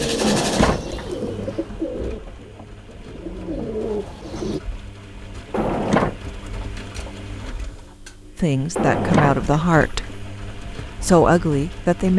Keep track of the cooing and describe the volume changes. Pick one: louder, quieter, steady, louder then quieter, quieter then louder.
quieter then louder.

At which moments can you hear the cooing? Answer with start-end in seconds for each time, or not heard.
0.0-4.6.